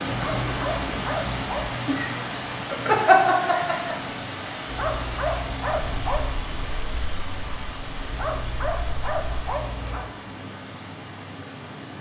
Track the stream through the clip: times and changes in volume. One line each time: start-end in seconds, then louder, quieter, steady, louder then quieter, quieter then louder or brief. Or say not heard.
0.0-11.9 quieter.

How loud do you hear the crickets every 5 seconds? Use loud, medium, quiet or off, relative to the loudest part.
loud, quiet, quiet.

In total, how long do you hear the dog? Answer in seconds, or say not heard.
5 s.